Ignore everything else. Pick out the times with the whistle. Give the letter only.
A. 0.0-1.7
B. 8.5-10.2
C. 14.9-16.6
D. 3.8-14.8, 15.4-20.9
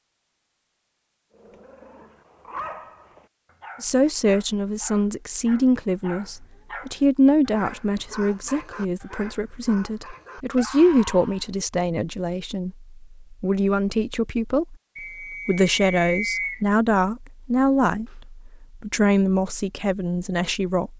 C.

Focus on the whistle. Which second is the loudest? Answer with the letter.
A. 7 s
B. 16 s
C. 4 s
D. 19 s
B.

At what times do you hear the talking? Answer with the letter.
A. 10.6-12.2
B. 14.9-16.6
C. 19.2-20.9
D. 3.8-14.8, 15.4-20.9
D.